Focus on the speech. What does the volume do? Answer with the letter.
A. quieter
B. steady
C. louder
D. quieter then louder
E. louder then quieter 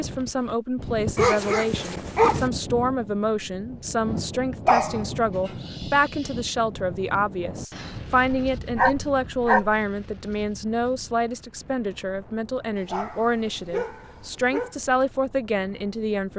B.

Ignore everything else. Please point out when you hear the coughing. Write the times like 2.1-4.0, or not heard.
not heard.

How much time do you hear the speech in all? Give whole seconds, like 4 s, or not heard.
16 s.